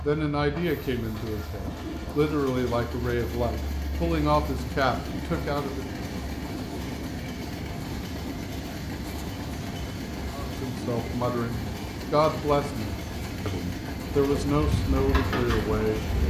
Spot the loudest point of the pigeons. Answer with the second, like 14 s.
15 s.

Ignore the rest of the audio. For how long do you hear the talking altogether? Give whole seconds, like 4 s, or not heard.
12 s.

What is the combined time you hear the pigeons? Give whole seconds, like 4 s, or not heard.
2 s.